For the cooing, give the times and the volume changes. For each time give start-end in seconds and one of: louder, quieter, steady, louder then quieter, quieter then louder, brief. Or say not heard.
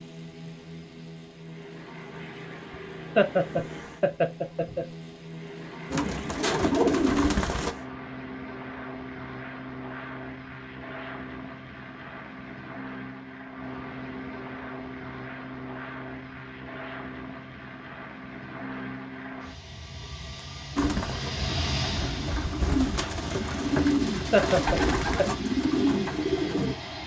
5.9-7.8 brief
20.8-26.8 louder.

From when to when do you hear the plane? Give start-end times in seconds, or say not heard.
0.0-27.0.